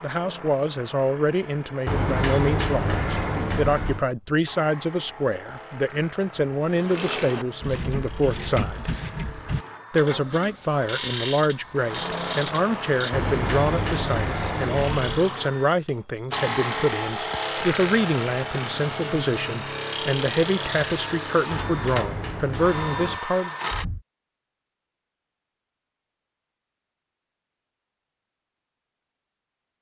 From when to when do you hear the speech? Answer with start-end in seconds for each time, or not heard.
0.0-8.9, 9.9-23.5.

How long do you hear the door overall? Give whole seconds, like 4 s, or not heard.
6 s.